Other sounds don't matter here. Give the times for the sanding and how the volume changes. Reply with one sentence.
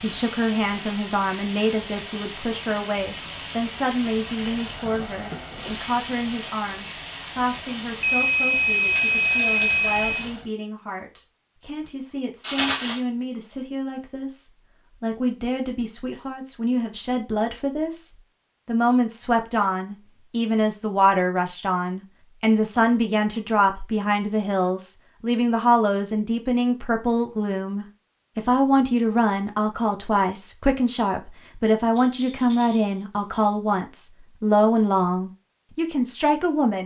The sanding can't be heard in this clip.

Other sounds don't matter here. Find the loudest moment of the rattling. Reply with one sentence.
The volume of the rattling peaks at 13 seconds.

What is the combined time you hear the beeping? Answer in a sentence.
You can hear the beeping for 2 seconds altogether.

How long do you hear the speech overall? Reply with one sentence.
You can hear the speech for 37 seconds altogether.